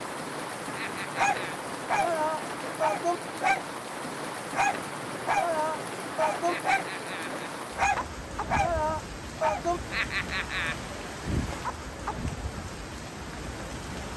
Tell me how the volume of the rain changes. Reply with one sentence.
The loudness of the rain stays about the same.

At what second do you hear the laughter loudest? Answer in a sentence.
The loudest moment of the laughter is at 10 seconds.